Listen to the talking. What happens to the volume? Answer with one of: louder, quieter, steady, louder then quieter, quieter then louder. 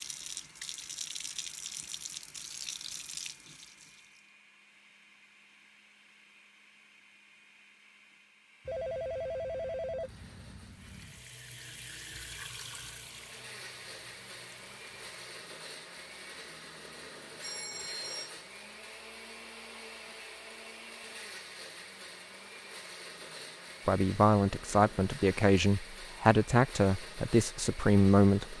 steady.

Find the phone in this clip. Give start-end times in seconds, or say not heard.
8.7-11.2, 17.4-18.3.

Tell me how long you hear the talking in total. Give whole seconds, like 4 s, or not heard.
5 s.